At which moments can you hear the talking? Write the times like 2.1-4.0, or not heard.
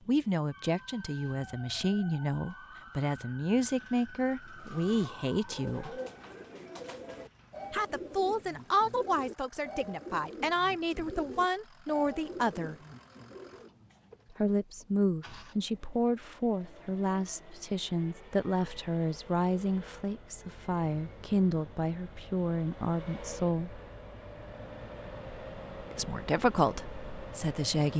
0.1-6.0, 7.7-12.8, 14.3-23.8, 25.9-27.9.